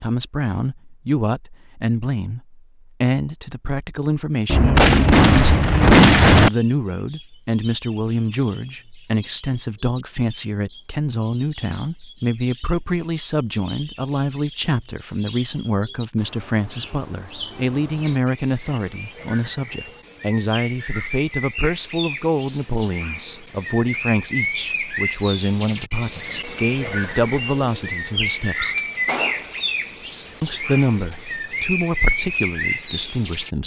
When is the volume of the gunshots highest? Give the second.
6 s.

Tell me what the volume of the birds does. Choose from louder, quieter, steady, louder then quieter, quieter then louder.
louder.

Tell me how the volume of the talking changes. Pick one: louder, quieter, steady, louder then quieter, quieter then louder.
steady.